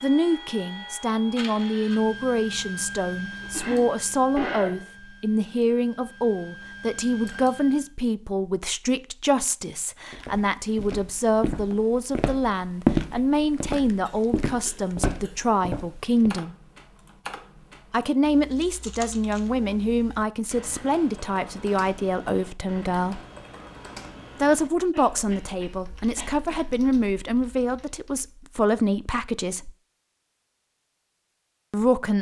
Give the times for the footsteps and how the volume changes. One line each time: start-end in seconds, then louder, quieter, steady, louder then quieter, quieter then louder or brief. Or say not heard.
10.1-16.4 louder then quieter.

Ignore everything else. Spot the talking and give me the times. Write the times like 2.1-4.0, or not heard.
0.0-16.6, 17.9-23.2, 24.4-29.7, 31.7-32.1.